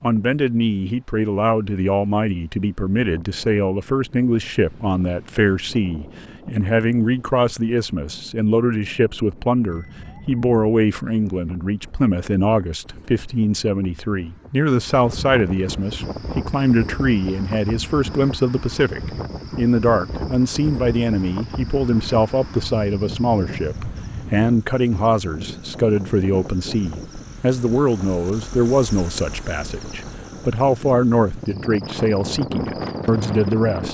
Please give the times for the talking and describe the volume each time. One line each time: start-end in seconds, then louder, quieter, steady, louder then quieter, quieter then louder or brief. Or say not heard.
0.0-33.9 steady.